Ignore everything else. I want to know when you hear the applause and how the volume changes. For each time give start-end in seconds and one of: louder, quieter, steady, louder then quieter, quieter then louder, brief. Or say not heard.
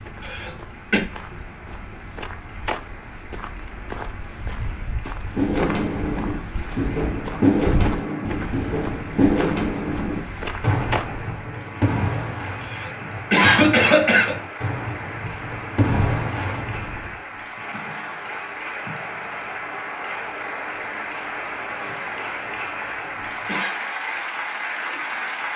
0.0-25.5 louder.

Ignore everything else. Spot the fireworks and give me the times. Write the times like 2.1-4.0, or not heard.
5.2-17.1.